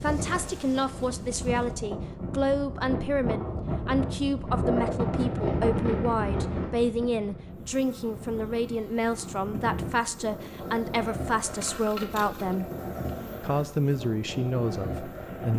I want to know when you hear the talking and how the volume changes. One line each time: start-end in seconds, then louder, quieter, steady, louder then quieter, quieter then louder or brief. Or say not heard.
0.0-12.7 steady
13.4-15.5 brief.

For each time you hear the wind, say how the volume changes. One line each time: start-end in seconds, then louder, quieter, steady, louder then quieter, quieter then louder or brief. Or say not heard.
0.0-15.5 louder then quieter.